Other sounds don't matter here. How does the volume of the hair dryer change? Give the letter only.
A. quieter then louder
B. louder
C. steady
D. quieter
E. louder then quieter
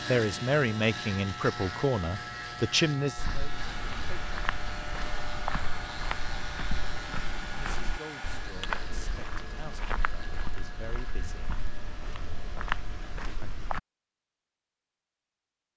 C.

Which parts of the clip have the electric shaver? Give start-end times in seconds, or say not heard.
0.0-13.2.